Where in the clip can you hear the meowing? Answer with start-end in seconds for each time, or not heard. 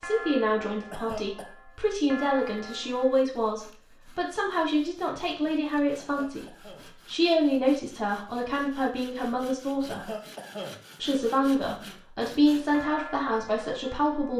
not heard.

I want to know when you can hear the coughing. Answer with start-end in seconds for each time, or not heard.
0.9-1.5, 6.0-6.9, 9.9-10.8.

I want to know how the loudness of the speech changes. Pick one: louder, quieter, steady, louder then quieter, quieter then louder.
steady.